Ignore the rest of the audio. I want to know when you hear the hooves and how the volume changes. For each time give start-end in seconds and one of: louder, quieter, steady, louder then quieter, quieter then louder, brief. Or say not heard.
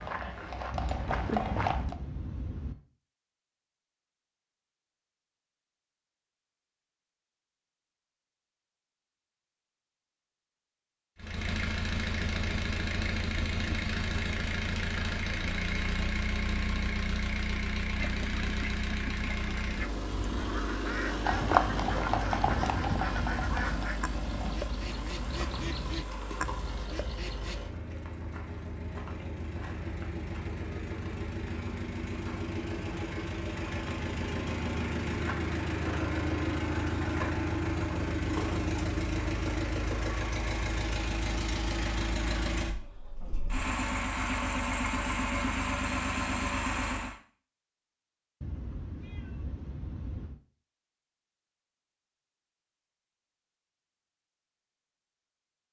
0.0-1.9 brief
21.1-26.9 quieter.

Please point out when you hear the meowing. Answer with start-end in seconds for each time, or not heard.
0.7-2.8, 22.5-23.9, 48.4-50.4.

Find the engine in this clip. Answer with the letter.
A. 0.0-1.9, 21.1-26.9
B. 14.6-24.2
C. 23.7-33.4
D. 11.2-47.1
D.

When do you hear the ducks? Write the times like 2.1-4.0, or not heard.
17.9-27.6.